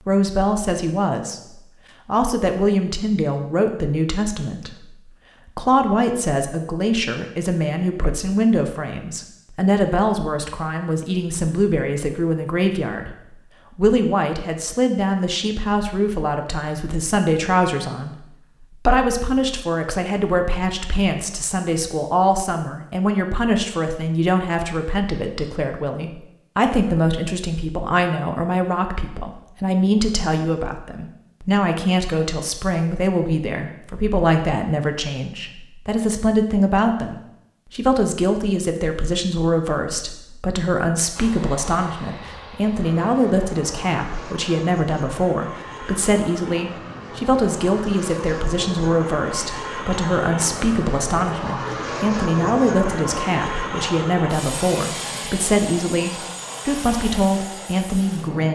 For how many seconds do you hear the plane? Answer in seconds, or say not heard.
17 s.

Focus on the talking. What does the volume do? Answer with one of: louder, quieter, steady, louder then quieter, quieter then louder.
steady.